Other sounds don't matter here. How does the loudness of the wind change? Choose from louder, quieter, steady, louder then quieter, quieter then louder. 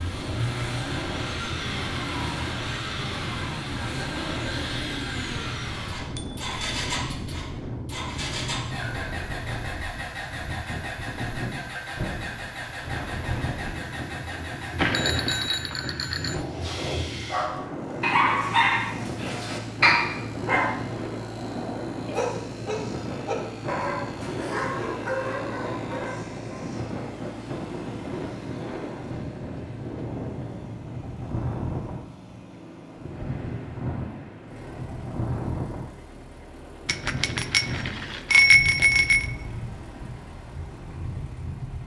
steady.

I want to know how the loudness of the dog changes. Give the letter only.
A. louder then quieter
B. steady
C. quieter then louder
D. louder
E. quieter
E.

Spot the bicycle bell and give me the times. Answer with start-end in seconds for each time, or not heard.
6.0-7.3, 14.8-16.4, 36.9-39.3.